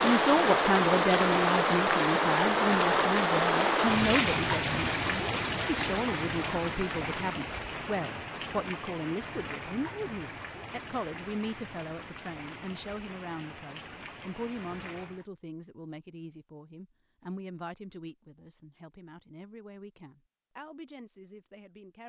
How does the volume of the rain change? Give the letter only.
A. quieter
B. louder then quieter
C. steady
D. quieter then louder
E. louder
A.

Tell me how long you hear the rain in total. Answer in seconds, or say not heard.
15 s.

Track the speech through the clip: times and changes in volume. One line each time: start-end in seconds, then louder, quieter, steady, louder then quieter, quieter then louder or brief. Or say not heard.
0.0-22.0 quieter.